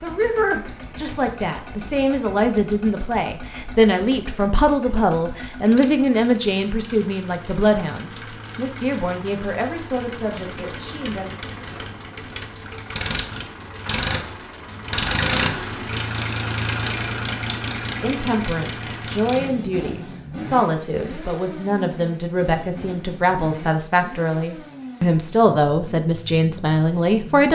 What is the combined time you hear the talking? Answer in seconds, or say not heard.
21 s.